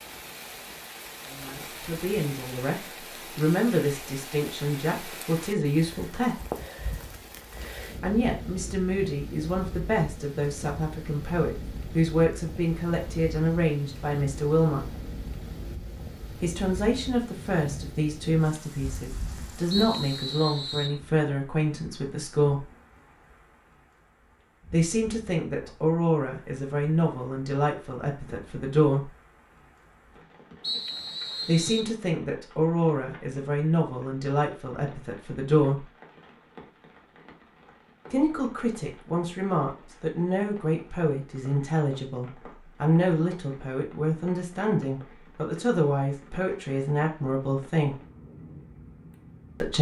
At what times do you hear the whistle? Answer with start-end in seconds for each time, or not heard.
19.7-21.0, 30.6-31.9.